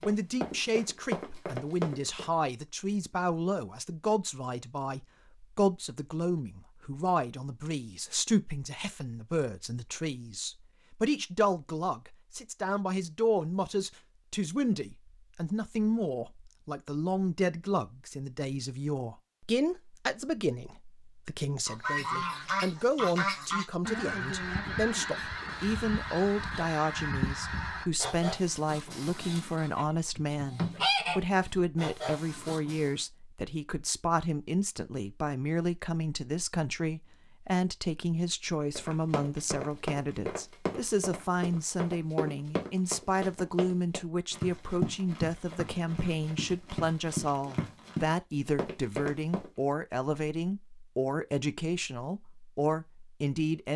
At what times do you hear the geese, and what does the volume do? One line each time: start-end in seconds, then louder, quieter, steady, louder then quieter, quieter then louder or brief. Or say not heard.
21.6-33.0 quieter then louder.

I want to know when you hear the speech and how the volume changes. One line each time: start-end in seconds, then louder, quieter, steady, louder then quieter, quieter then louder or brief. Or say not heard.
0.0-53.7 steady.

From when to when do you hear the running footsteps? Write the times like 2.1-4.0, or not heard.
0.0-2.2, 38.8-49.5.